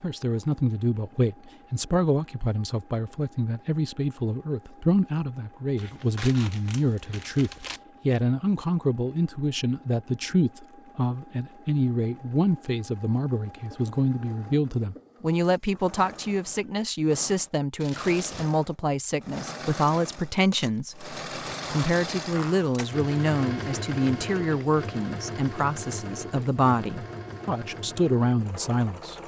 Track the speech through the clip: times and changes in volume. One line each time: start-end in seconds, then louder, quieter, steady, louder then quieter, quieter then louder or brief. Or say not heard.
0.0-29.1 steady.